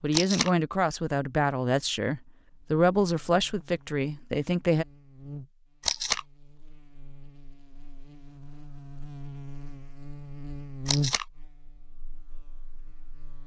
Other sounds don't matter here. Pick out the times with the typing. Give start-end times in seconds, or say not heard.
not heard.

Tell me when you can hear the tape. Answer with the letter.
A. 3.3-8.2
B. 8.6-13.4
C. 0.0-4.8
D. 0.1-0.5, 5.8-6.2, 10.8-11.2
D.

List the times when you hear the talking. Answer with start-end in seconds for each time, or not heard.
0.0-4.8.